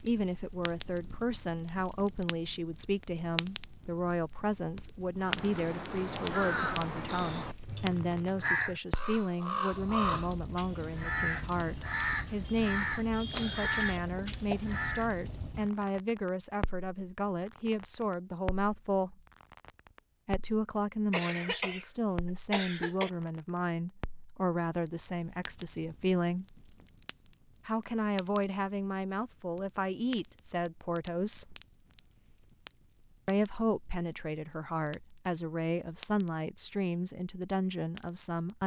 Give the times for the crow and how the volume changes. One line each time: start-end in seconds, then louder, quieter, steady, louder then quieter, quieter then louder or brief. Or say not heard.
5.2-15.1 steady.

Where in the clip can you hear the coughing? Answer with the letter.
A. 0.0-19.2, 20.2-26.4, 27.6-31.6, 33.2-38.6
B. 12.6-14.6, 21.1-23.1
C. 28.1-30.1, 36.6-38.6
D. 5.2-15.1
B.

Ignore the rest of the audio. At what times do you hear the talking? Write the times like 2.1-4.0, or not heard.
0.0-19.2, 20.2-26.4, 27.6-31.6, 33.2-38.6.